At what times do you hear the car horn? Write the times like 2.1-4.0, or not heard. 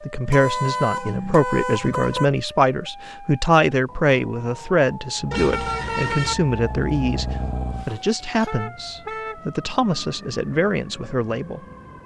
0.2-2.3, 5.3-6.3, 8.4-9.4.